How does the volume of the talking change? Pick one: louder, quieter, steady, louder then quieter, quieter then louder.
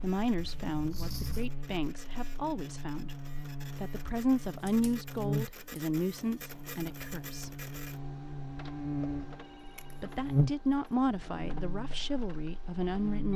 steady.